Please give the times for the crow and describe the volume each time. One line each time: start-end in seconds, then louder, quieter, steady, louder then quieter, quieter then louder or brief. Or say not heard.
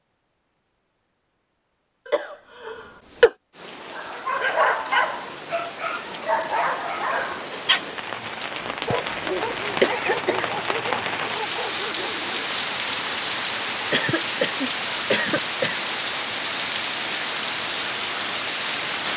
not heard.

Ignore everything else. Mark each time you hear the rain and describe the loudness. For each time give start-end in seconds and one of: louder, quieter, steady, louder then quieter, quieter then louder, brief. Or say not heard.
3.5-19.1 louder.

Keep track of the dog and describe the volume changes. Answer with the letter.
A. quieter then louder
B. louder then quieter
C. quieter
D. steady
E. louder
C.